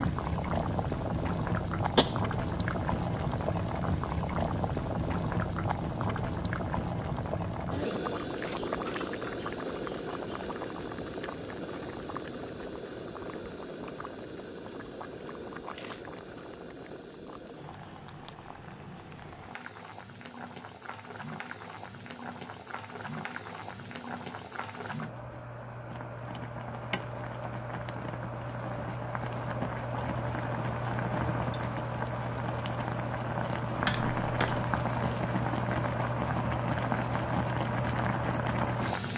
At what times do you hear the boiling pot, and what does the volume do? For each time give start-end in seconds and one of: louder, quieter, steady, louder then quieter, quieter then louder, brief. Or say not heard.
0.0-39.1 quieter then louder.